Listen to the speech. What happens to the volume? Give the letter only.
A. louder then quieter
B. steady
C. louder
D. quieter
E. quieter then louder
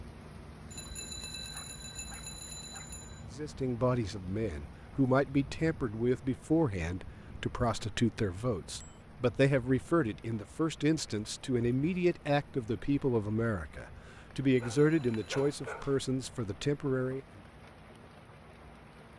B.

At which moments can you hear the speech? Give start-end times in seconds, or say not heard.
3.3-17.2.